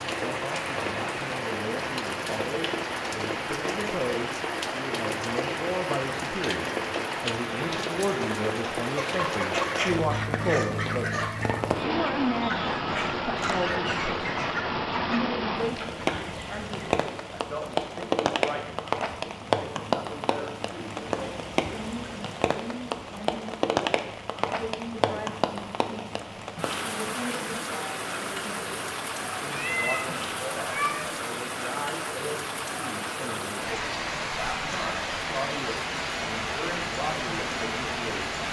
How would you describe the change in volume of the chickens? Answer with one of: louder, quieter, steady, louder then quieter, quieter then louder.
quieter.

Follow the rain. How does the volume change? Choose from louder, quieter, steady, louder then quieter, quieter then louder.
steady.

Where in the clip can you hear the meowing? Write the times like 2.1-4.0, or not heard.
29.5-31.1.